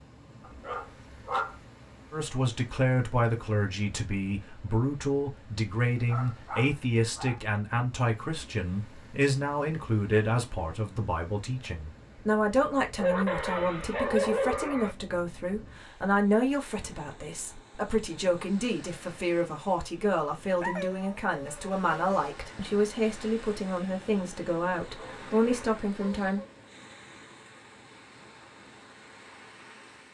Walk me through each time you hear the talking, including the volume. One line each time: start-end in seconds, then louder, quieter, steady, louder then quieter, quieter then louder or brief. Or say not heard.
2.1-26.4 steady.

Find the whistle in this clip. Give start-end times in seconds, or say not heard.
not heard.